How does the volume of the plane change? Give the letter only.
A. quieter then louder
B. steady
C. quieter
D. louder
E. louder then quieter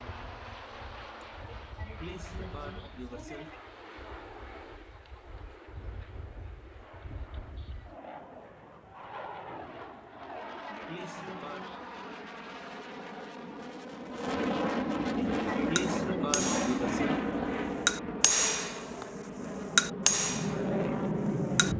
D.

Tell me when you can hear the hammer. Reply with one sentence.
The hammer can be heard from 15.8 to 16.9 s, from 17.9 to 18.8 s, from 19.8 to 20.6 s and from 21.2 to 21.7 s.